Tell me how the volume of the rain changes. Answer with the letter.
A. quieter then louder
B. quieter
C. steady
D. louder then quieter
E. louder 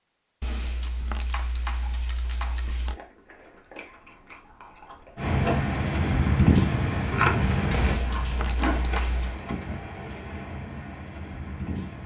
B.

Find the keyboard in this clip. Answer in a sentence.
You can hear the keyboard from 0.4 to 3.0 s and from 7.7 to 9.4 s.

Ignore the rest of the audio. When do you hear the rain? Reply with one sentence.
You can hear the rain from 5.2 to 12.0 s.